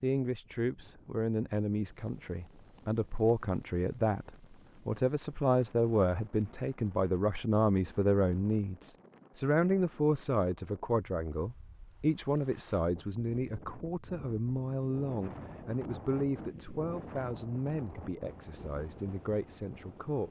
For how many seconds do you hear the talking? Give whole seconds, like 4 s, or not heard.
20 s.